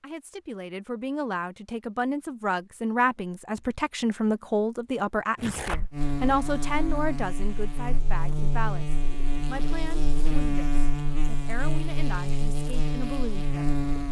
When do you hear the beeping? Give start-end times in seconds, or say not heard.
not heard.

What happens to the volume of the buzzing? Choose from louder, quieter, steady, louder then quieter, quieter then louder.
steady.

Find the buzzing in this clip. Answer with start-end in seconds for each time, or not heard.
5.9-14.0.